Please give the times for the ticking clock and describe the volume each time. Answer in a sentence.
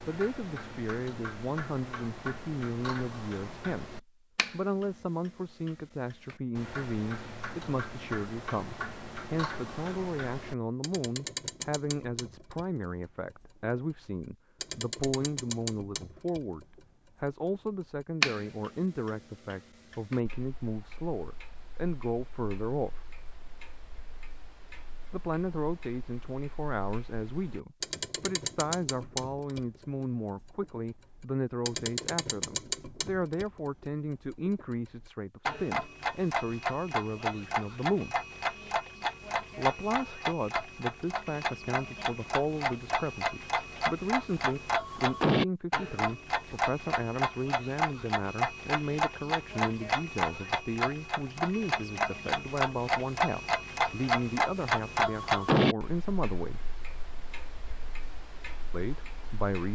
The ticking clock can be heard from 0.0 to 59.7 s, getting louder.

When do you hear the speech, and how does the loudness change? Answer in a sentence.
The speech can be heard from 0.1 to 23.1 s, at a steady volume; from 25.1 to 38.1 s, at a steady volume; from 39.5 to 56.6 s, at a steady volume; and briefly from 58.7 to 59.7 s.